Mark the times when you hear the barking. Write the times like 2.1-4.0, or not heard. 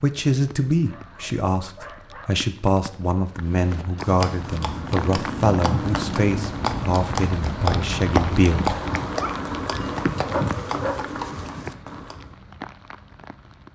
0.7-2.5, 9.2-11.1.